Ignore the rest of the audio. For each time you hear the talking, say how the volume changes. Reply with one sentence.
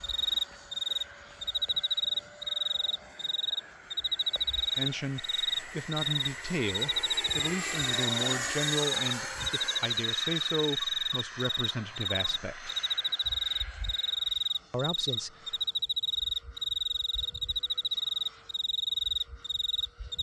You can hear the talking from 4.8 to 12.8 s, at a steady volume; and briefly from 14.7 to 15.6 s.